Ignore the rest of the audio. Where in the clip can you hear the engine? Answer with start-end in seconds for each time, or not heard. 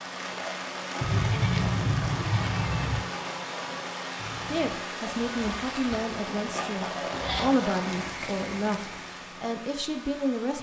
0.0-10.5.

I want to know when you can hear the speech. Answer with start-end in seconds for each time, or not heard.
4.5-10.5.